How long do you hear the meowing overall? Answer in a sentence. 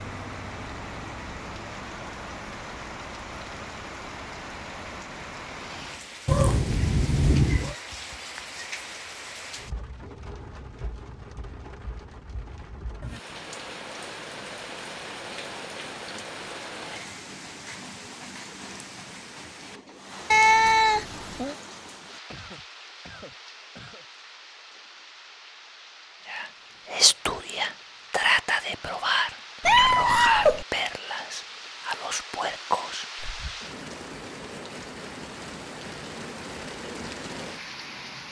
The meowing can be heard for 4 seconds in total.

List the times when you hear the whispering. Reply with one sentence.
The whispering can be heard from 26.2 to 33.5 s.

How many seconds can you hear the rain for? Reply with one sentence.
The rain can be heard for 38 seconds in total.